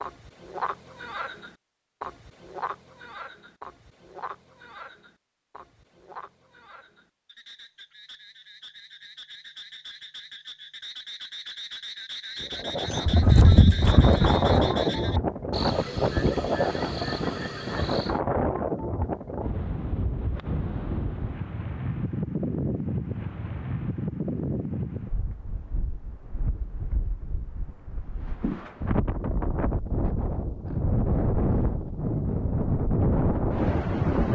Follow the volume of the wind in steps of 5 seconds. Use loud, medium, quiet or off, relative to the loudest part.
off, off, loud, loud, medium, medium, loud.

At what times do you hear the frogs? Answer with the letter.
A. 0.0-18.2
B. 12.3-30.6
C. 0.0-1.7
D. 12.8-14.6
A.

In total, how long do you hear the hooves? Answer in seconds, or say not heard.
2 s.